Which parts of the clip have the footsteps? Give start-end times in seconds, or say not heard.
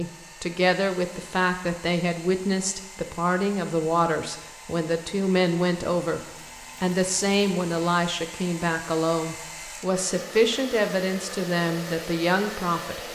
not heard.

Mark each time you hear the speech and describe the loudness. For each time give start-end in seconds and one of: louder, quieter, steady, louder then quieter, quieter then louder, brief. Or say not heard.
0.0-13.0 steady.